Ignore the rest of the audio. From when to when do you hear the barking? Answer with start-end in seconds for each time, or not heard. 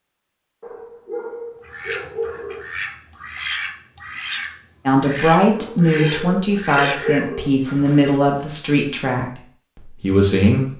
0.6-2.6, 5.5-7.5.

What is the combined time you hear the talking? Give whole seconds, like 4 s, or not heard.
6 s.